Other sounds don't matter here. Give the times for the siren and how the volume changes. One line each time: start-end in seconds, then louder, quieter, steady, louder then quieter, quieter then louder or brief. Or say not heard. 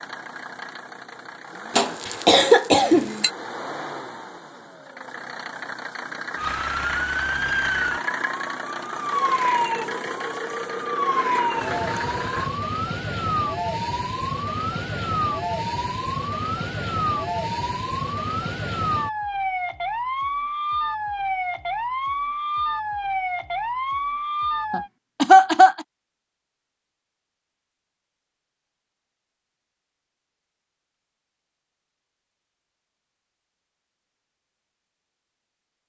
6.3-24.9 steady.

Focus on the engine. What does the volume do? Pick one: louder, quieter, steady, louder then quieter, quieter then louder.
louder.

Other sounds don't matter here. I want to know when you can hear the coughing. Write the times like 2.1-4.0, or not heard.
1.8-3.3, 24.7-25.9.